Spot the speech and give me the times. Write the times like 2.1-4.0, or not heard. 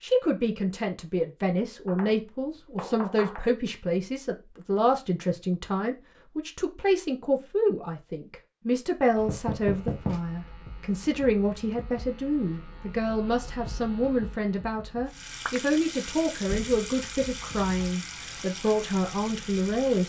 0.0-20.0.